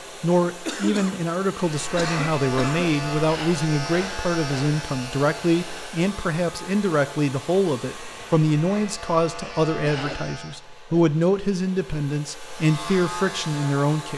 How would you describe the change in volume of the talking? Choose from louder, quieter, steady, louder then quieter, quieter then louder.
steady.